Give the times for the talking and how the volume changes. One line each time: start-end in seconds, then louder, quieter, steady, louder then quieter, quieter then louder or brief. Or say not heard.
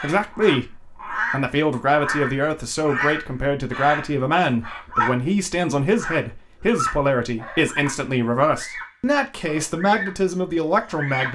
0.0-11.2 steady.